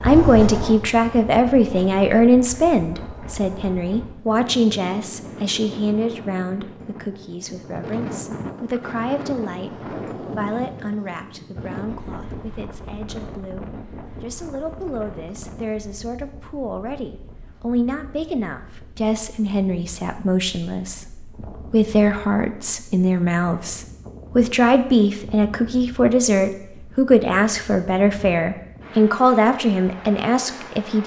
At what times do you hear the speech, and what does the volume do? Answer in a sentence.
You can hear the speech from 0.0 to 31.0 s, getting quieter then louder.